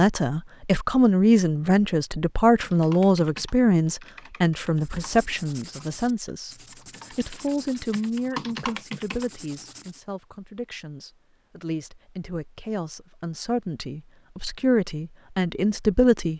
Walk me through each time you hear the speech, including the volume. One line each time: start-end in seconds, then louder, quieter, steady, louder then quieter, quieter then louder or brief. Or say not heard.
0.0-16.3 quieter then louder.